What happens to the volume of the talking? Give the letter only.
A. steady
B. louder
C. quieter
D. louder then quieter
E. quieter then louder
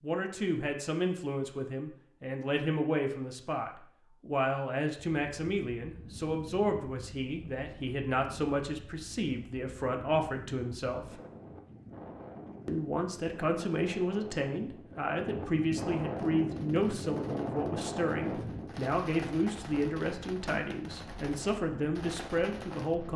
A.